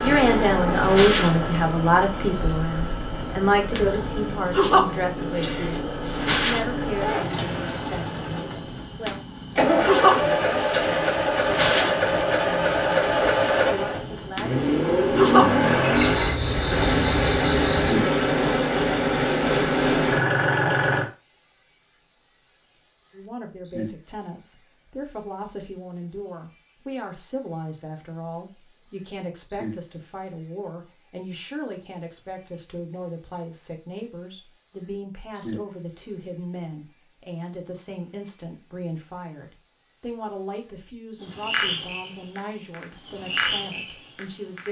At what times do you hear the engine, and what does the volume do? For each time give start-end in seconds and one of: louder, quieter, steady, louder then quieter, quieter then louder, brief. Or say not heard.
0.0-21.1 louder.